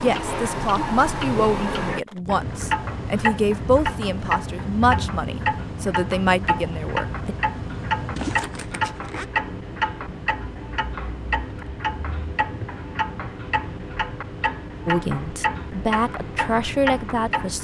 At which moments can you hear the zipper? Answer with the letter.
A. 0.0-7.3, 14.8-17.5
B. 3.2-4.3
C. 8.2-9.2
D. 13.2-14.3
C.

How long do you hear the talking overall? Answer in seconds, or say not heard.
10 s.